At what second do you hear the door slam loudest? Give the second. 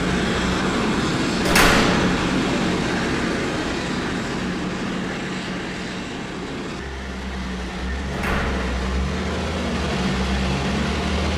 2 s.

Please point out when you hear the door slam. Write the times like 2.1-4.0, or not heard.
1.4-2.2, 8.1-8.9.